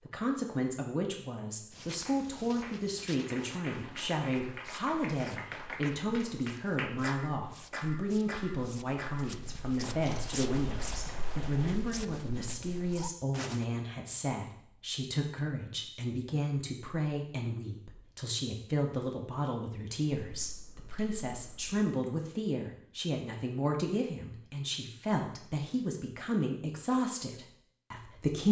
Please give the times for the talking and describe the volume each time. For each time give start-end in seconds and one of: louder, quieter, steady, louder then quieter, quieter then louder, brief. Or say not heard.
0.1-28.4 steady.